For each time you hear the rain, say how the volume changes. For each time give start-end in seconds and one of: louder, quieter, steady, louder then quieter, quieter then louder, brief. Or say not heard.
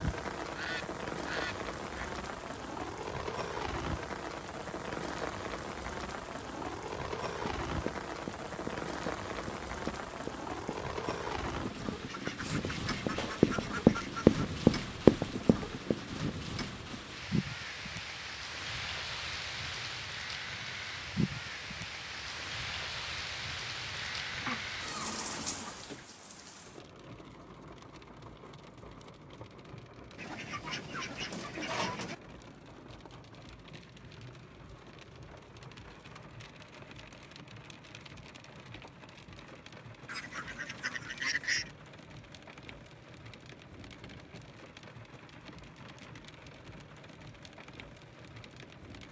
0.0-49.0 quieter.